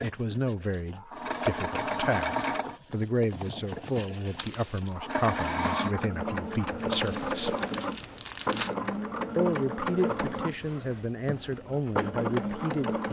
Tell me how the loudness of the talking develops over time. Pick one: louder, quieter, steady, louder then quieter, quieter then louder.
steady.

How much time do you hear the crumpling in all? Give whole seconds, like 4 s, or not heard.
3 s.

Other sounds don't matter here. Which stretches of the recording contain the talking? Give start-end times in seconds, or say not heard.
0.0-7.5, 9.3-13.0.